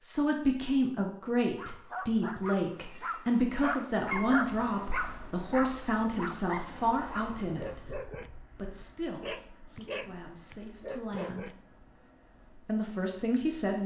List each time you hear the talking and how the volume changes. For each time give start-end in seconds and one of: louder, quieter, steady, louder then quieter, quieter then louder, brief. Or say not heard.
0.0-11.5 quieter
12.6-13.8 brief.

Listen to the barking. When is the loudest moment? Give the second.
4 s.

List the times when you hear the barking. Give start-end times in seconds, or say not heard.
1.6-11.6.